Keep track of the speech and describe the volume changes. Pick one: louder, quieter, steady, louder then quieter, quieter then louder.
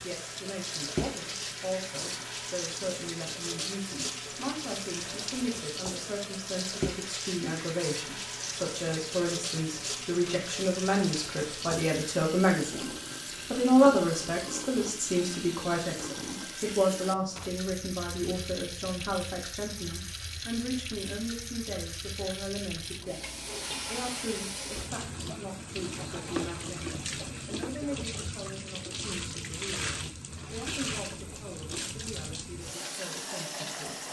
louder then quieter.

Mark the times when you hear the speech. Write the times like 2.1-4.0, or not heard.
0.0-23.2, 23.9-34.0.